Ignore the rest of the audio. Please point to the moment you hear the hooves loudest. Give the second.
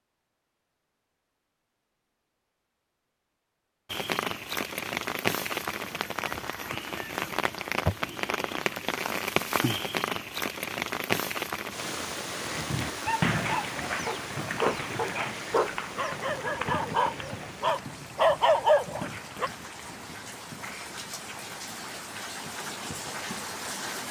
13 s.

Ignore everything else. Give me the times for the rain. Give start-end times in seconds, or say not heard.
3.9-24.0.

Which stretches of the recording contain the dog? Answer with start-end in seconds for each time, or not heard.
13.0-19.5.